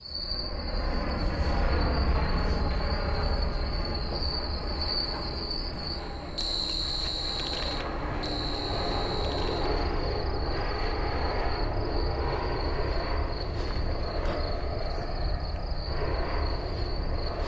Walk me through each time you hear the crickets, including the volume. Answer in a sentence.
You can hear the crickets from 0.0 to 17.4 s, getting louder then quieter.